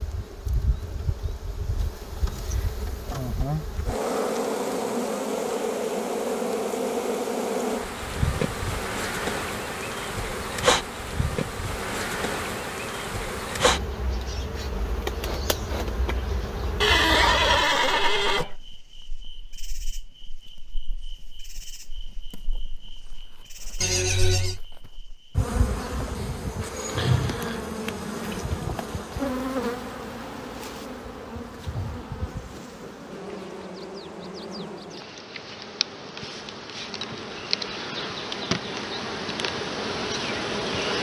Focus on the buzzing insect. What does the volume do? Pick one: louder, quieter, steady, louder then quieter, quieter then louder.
quieter then louder.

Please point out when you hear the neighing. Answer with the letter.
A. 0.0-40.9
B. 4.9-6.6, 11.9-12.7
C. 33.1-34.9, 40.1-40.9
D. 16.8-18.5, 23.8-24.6
D.